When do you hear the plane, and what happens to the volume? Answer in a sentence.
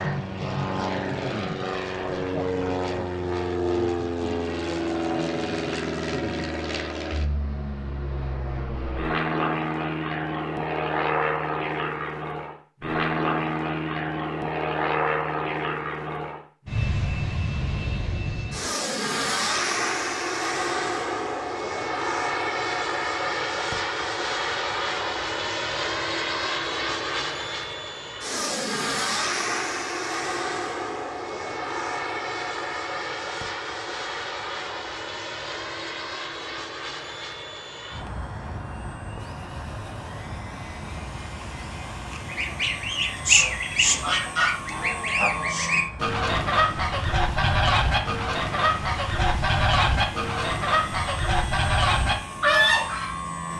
The plane can be heard from 0.0 to 53.5 s, getting quieter.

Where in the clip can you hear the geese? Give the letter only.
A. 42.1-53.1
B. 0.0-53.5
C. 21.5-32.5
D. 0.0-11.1
A.